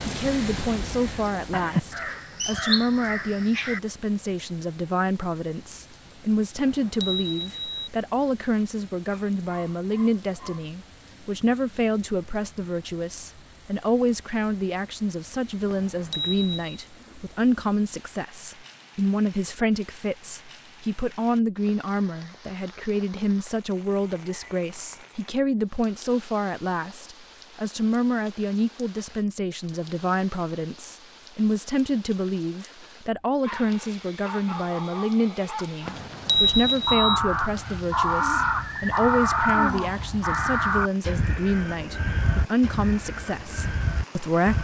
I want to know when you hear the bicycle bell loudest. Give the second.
36 s.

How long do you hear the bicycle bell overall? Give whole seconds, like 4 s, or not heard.
4 s.